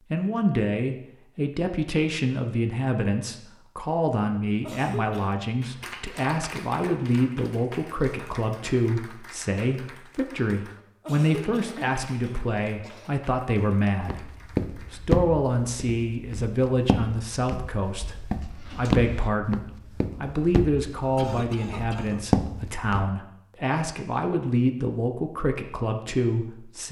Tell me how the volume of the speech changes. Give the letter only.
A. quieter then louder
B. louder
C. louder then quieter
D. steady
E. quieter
D.